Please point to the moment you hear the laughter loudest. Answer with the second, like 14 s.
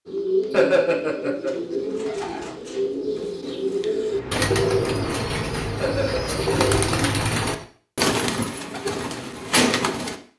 1 s.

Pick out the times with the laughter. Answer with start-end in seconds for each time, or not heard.
0.5-1.6, 5.8-6.4.